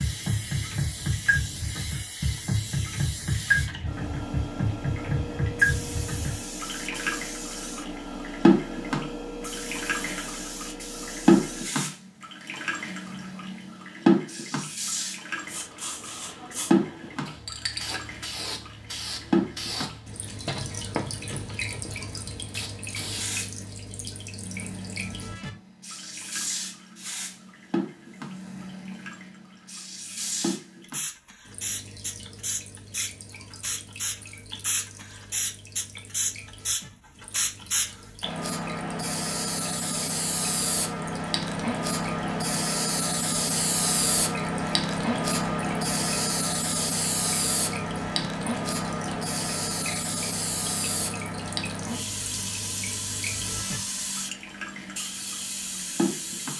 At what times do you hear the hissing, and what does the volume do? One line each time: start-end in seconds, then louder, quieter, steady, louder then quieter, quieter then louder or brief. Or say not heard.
0.0-56.5 louder.